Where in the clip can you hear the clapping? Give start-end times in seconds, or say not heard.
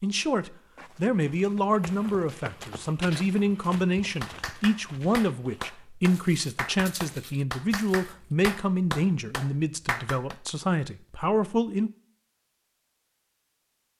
3.5-10.3.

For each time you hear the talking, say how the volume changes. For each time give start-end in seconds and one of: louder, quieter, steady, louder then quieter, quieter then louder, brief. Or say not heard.
0.0-11.9 steady.